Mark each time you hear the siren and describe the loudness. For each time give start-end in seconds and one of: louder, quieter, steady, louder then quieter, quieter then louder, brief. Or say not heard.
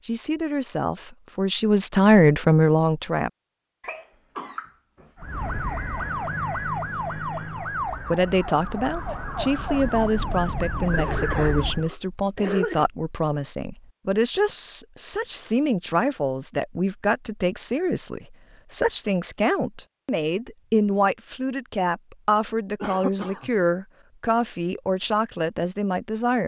5.2-11.9 quieter then louder.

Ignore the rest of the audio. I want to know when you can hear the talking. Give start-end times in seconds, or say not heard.
0.0-3.3, 8.0-26.4.